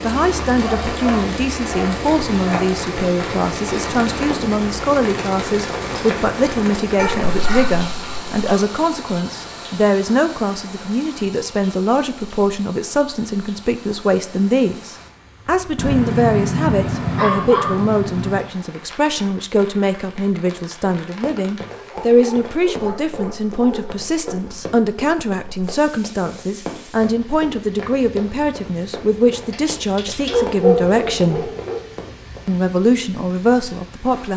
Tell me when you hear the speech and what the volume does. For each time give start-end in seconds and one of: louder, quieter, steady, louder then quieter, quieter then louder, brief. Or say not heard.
0.0-31.5 steady
32.5-34.3 brief.